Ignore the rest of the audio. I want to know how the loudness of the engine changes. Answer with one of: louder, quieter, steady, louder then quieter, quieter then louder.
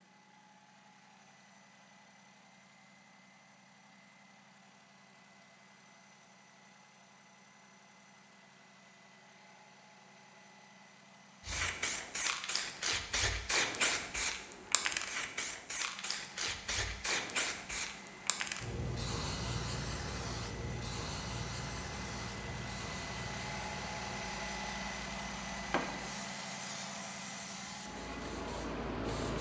louder.